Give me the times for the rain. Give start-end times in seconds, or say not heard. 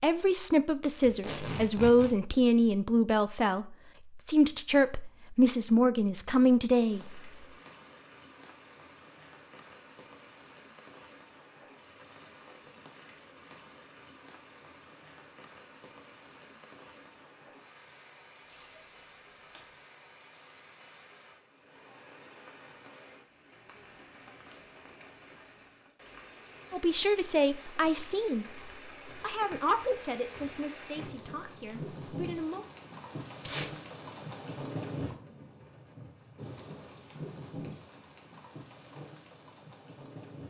6.7-40.4.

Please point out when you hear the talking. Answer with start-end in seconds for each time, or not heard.
0.0-7.2, 26.7-28.4, 29.2-32.6.